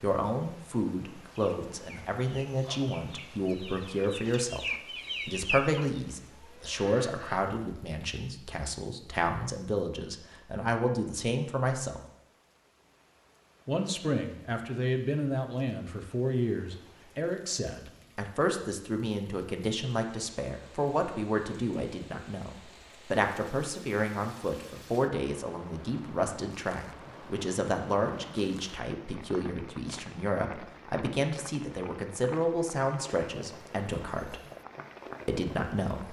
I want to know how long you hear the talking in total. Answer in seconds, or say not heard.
33 s.